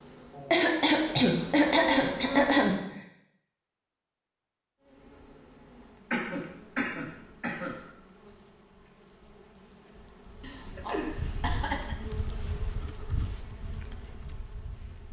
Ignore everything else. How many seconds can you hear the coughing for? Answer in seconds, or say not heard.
6 s.